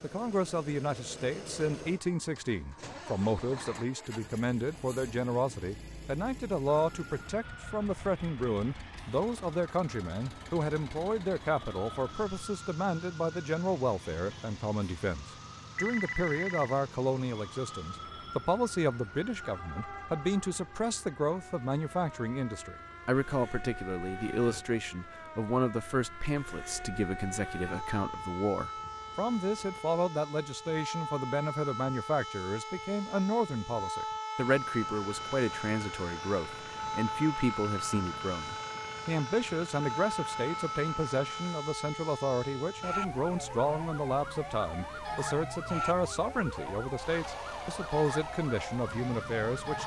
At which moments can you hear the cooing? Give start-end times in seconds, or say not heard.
not heard.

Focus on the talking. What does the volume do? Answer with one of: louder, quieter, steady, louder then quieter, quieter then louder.
steady.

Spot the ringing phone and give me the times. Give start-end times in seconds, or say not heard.
15.8-16.8.